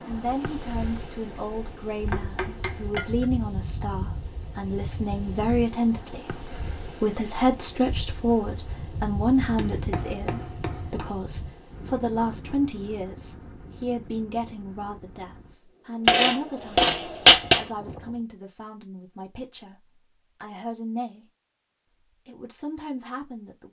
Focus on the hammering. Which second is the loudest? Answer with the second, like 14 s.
17 s.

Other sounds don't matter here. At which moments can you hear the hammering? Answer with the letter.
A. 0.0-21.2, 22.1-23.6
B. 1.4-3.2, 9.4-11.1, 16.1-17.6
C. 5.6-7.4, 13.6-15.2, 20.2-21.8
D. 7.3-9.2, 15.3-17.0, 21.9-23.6
B.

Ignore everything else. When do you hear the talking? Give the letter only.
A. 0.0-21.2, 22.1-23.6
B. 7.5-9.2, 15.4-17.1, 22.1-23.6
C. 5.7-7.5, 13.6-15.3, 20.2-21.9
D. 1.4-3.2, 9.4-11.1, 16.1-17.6
A.